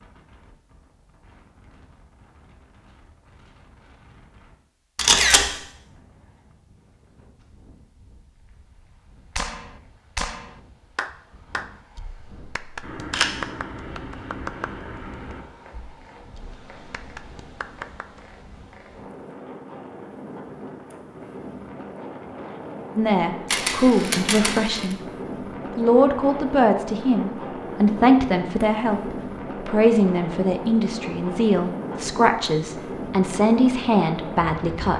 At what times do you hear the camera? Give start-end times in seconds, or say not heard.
5.0-5.5, 12.8-15.4, 23.5-24.9.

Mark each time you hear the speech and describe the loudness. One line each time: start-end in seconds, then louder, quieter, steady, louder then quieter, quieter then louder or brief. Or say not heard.
22.9-25.0 brief
25.8-34.9 steady.